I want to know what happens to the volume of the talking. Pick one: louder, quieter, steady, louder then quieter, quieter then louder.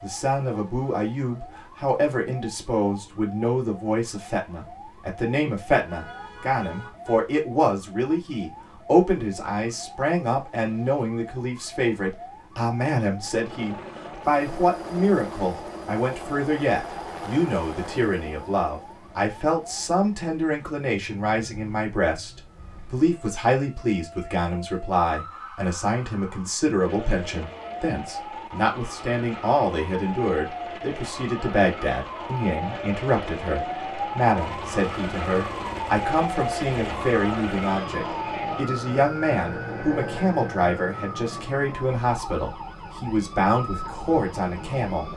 steady.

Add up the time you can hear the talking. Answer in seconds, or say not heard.
45 s.